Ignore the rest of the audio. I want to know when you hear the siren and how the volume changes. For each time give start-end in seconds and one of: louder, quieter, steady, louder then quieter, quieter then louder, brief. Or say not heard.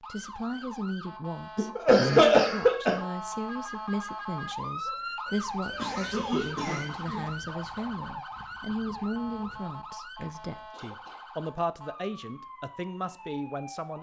0.0-13.9 louder then quieter.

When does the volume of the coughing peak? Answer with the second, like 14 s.
2 s.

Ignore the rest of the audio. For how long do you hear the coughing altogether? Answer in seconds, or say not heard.
4 s.